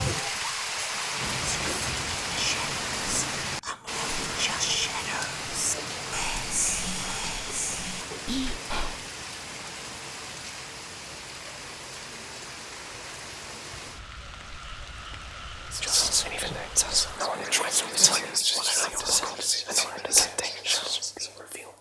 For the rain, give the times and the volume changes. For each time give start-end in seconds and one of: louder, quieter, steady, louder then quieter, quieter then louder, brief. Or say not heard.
0.0-18.4 quieter.